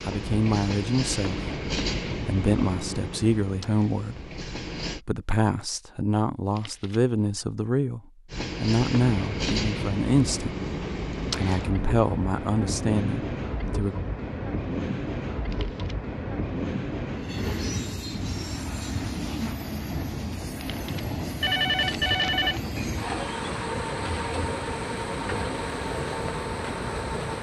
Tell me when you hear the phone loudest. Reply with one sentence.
The volume of the phone peaks at 22 seconds.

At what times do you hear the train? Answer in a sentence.
You can hear the train from 0.0 to 5.0 s and from 8.3 to 27.3 s.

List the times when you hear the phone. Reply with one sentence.
You can hear the phone from 6.5 to 7.4 s, from 15.5 to 15.9 s and from 20.6 to 22.6 s.